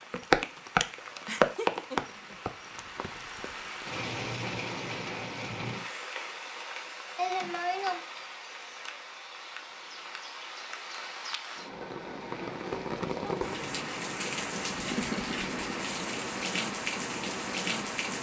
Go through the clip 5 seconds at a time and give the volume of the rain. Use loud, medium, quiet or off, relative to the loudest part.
loud, medium, medium, loud.